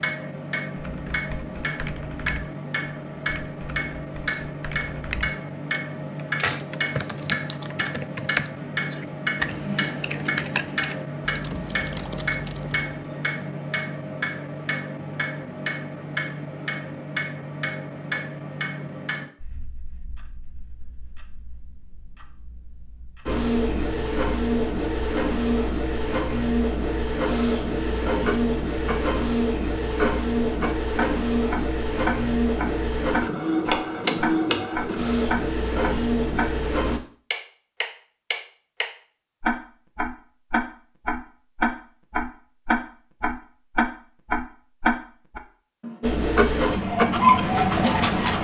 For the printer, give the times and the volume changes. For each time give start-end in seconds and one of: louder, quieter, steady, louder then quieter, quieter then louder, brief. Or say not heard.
23.2-37.0 steady
46.0-48.3 brief.